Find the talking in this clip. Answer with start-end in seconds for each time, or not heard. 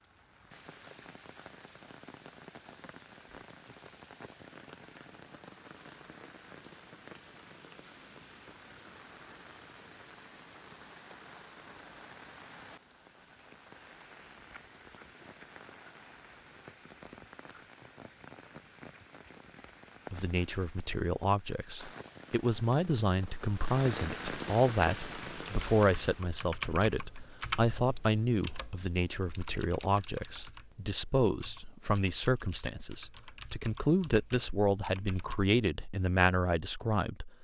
20.1-37.3.